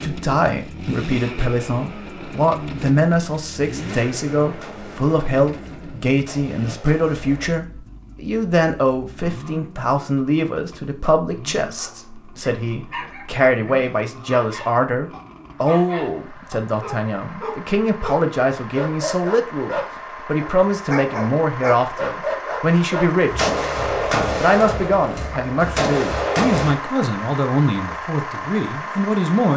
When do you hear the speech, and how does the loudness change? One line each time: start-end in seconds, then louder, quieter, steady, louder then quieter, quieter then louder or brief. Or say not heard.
0.0-29.5 steady.